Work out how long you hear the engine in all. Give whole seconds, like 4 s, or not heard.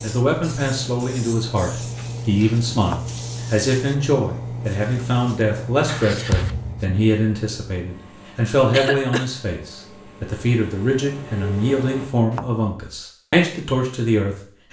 12 s.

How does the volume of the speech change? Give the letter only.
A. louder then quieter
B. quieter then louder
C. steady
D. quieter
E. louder
C.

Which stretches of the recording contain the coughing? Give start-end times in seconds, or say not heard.
8.7-9.3.